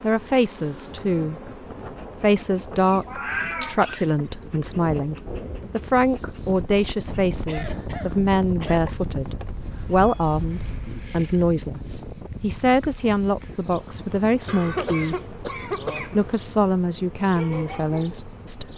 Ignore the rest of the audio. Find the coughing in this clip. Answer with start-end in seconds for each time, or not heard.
2.9-4.0, 7.5-8.8, 14.4-16.2.